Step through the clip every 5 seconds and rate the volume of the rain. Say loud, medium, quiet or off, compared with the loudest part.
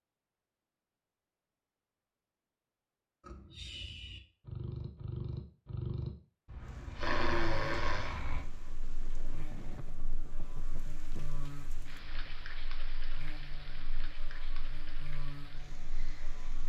off, loud, loud, loud.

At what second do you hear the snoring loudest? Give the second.
7 s.